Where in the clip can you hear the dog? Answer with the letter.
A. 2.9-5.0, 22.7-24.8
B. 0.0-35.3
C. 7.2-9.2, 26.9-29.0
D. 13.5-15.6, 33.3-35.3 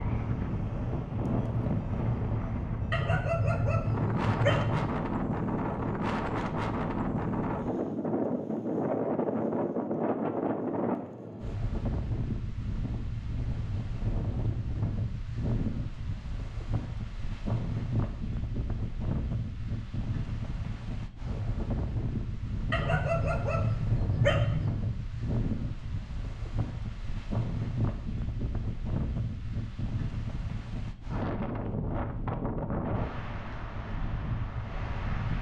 A.